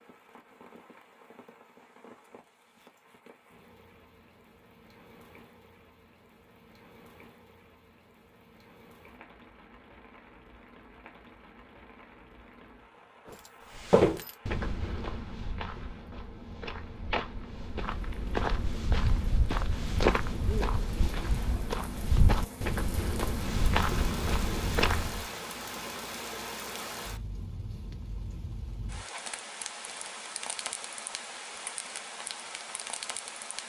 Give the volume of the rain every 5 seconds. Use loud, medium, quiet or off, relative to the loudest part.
quiet, quiet, quiet, medium, loud, loud, loud.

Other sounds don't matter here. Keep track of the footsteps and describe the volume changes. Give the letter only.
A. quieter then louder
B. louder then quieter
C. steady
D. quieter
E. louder
A.